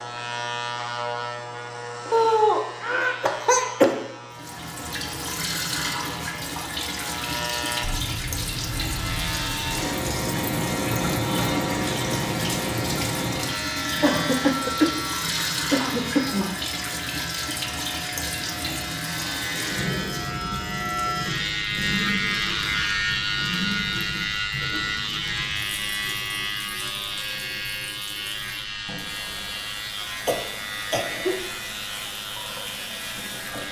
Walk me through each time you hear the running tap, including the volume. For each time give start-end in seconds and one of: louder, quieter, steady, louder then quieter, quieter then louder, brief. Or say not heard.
4.3-33.6 quieter.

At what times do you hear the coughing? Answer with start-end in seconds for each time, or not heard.
2.1-3.9, 14.0-16.5, 30.0-31.4.